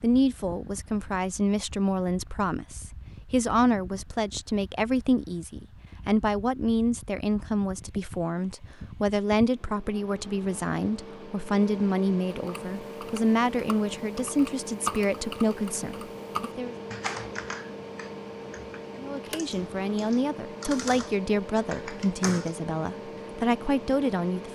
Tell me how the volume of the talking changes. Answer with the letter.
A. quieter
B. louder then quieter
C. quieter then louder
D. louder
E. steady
E.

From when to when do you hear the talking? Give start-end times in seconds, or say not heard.
0.0-16.8, 19.0-24.5.